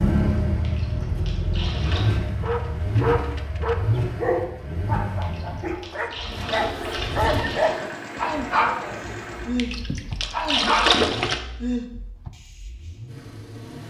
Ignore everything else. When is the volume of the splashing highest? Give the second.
11 s.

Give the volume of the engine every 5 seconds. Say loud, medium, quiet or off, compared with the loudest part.
loud, medium, quiet.